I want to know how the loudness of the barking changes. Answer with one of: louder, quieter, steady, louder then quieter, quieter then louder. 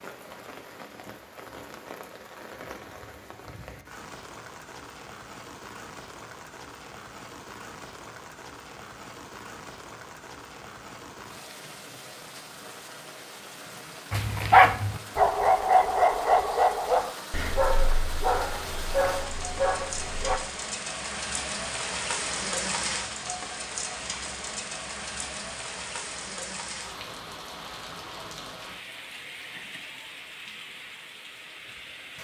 quieter.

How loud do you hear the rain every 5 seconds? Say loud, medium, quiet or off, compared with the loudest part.
medium, medium, medium, medium, loud, medium, medium.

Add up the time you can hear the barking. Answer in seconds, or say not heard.
6 s.